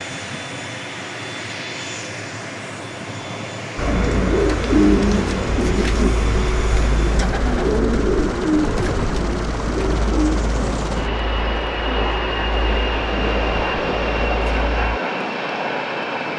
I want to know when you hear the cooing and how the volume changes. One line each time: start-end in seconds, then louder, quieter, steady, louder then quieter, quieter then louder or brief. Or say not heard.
3.8-15.0 quieter.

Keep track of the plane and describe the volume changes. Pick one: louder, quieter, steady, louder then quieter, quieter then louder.
louder.